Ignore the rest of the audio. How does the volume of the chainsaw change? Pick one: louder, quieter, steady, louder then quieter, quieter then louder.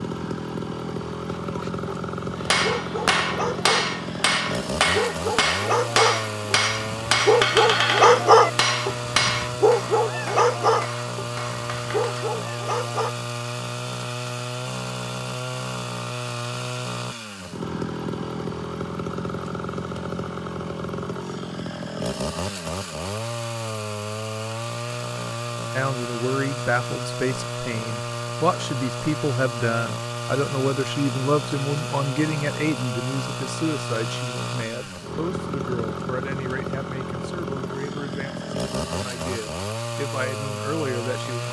steady.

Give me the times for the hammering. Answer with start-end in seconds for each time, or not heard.
2.4-12.3.